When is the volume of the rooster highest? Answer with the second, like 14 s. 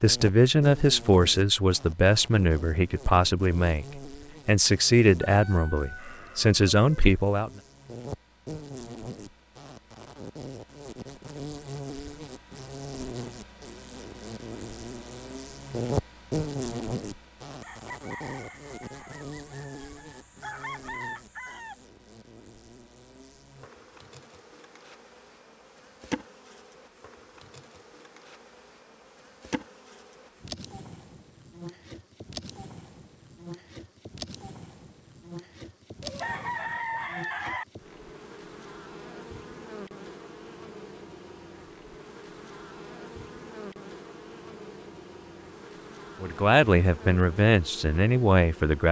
37 s.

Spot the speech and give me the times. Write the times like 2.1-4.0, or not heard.
0.0-7.5, 46.2-48.8.